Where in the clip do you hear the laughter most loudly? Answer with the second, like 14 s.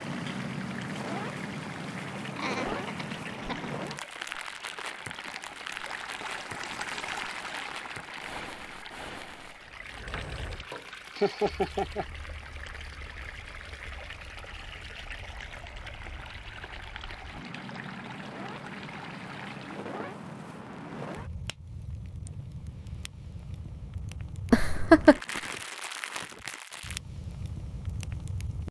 25 s.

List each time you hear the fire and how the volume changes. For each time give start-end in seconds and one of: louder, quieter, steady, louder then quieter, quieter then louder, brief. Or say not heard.
0.0-28.6 quieter then louder.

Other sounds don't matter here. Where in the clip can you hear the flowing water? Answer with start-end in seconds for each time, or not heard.
0.0-19.8.